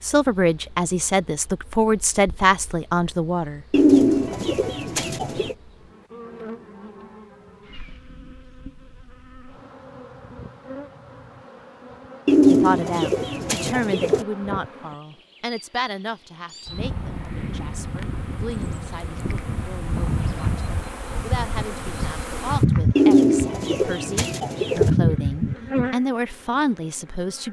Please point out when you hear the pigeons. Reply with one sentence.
The pigeons can be heard from 3.7 to 5.5 s, from 12.2 to 14.2 s and from 22.9 to 24.9 s.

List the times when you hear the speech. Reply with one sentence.
You can hear the speech from 0.0 to 3.6 s and from 12.5 to 27.4 s.